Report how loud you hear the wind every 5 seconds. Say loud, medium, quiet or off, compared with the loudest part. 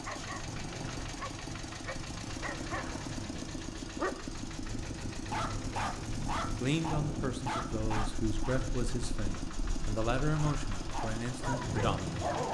medium, loud, loud.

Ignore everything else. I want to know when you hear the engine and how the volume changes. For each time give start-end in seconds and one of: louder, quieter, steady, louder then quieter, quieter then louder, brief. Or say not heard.
0.0-12.4 steady.